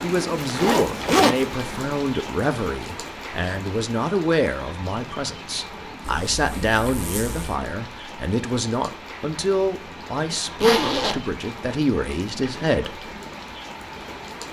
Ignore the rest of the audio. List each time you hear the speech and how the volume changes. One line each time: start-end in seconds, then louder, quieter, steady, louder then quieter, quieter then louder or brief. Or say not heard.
0.0-13.1 steady.